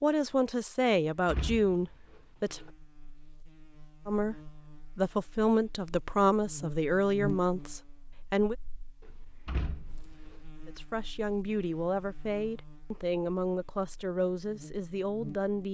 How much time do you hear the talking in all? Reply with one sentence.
You can hear the talking for 12 seconds altogether.